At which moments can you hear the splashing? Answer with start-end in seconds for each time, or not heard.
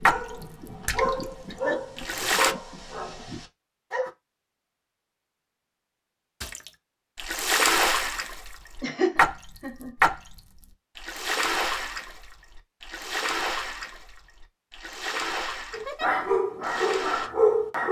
0.0-2.5, 6.4-17.3.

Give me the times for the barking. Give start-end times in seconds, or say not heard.
0.0-4.1, 15.7-17.8.